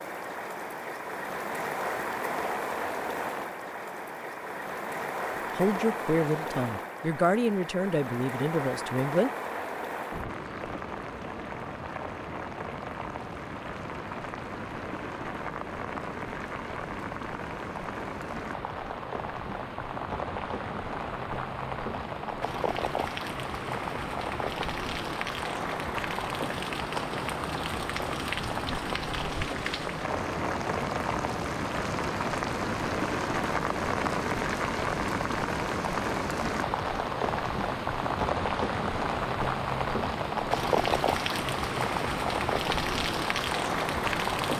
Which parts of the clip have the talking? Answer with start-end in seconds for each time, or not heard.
5.5-9.3.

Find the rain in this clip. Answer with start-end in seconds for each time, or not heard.
0.0-44.5.